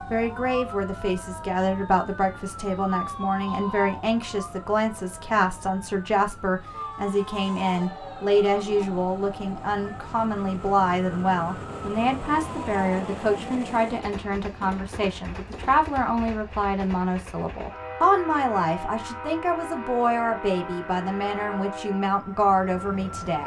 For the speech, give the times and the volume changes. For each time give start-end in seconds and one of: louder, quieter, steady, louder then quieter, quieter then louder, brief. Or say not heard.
0.1-23.4 steady.